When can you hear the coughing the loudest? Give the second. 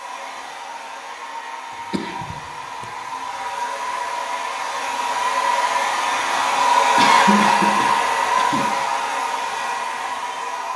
7 s.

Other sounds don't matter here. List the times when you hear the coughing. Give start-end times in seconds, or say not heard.
1.9-2.9, 7.0-8.7.